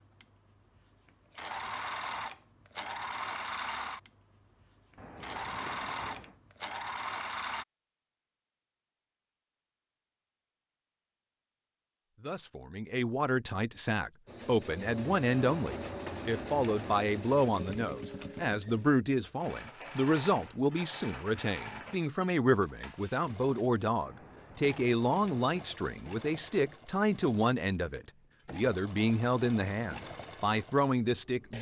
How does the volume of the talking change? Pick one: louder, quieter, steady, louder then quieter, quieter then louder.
steady.